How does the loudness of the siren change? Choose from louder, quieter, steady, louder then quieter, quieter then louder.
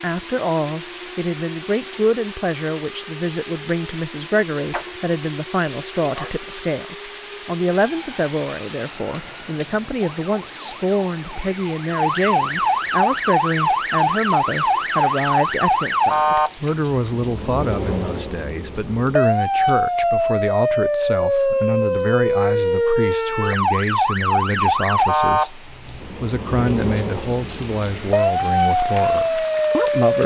louder.